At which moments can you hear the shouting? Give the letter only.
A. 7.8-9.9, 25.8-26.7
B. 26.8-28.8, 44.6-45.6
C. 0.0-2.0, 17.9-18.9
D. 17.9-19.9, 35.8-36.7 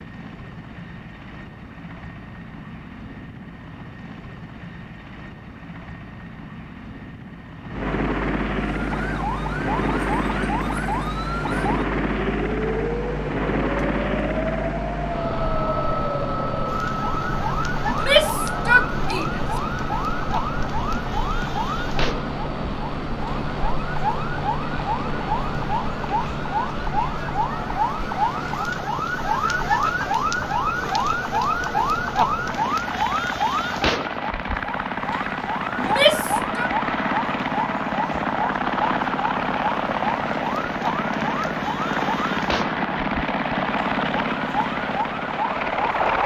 D.